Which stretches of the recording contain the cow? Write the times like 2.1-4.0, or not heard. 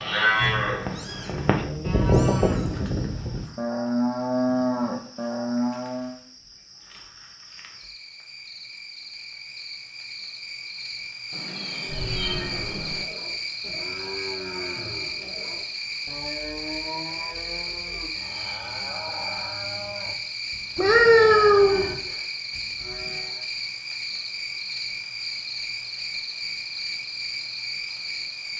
0.0-6.2, 11.8-23.4.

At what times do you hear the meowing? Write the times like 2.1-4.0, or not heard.
0.4-2.9, 11.3-13.1, 20.8-21.9.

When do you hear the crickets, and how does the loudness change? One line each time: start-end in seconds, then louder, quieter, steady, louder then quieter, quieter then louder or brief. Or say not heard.
0.0-28.5 louder.